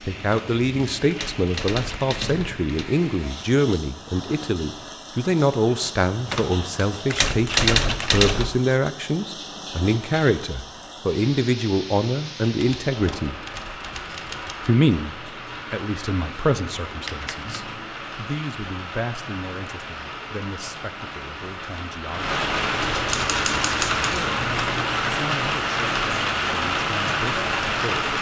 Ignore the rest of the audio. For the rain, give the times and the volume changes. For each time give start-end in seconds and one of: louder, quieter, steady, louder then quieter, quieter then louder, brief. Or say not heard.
0.0-28.1 louder.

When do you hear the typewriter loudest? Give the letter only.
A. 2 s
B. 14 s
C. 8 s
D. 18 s
C.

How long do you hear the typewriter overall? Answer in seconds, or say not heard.
10 s.